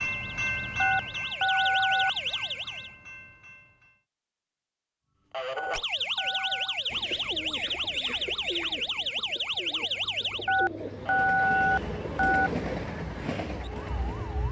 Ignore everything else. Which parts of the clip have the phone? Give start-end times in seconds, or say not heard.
0.8-2.1, 5.5-6.8, 10.4-12.5.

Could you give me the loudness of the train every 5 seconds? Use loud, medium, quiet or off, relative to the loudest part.
loud, off, loud.